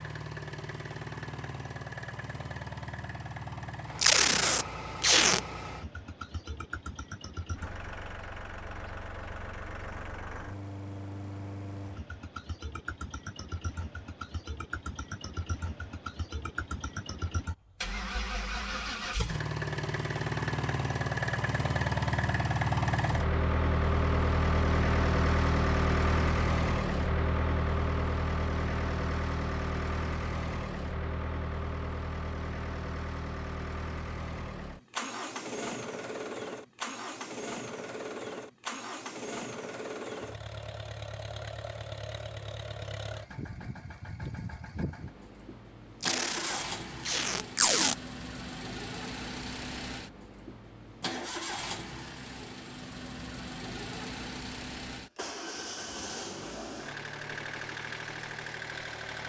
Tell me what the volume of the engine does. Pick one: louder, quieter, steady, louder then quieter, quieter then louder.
louder then quieter.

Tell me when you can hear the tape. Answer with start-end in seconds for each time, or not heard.
4.0-5.4, 46.0-48.0.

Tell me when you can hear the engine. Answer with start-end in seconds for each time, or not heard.
0.0-59.2.